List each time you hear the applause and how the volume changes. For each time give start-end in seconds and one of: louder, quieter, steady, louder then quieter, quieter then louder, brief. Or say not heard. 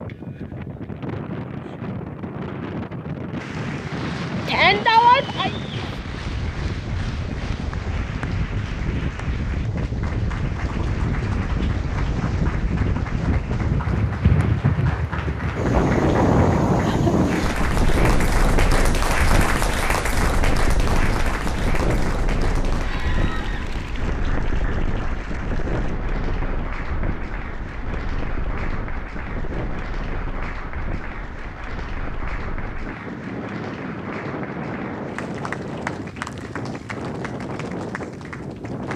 3.4-38.9 louder then quieter.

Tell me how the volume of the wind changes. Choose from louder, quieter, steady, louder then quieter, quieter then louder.
louder then quieter.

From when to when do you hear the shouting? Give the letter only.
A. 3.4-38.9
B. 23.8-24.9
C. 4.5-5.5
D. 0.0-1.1
C.